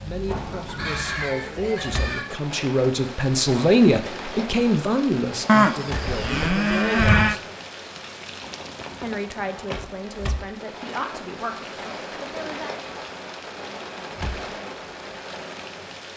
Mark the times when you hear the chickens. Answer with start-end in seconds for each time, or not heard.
0.2-2.2.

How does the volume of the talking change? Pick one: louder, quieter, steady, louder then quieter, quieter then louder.
louder then quieter.